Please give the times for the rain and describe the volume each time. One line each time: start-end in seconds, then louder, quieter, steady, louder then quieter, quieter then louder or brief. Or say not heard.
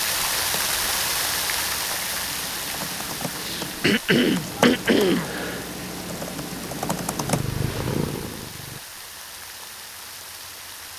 0.0-10.9 quieter.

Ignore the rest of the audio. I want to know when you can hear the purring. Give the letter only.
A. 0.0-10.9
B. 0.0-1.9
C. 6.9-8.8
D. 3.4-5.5
C.